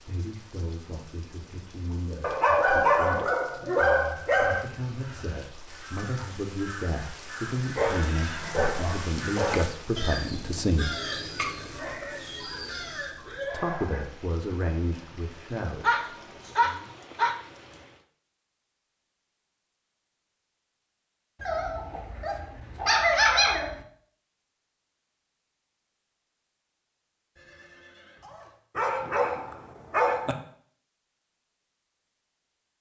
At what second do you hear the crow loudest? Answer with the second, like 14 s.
11 s.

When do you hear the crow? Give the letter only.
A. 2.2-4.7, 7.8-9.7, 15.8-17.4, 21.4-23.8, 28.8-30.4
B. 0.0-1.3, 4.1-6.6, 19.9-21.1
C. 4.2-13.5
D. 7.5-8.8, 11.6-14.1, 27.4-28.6
C.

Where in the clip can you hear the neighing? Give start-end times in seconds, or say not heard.
7.5-8.8, 11.6-14.1, 27.4-28.6.